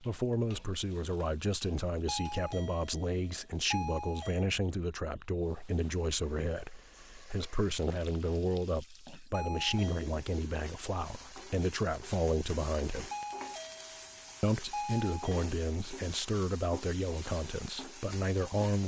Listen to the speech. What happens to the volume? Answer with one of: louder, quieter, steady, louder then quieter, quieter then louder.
steady.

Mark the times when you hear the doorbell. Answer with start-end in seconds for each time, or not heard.
2.0-4.5, 9.3-10.1, 13.1-15.4.